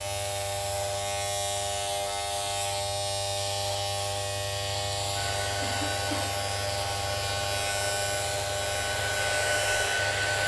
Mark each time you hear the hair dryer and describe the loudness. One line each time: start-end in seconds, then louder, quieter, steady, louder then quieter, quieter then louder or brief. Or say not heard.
5.2-10.4 louder.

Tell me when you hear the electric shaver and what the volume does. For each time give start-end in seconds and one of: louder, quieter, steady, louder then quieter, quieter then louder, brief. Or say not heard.
0.0-10.4 steady.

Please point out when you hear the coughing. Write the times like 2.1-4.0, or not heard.
5.6-6.3.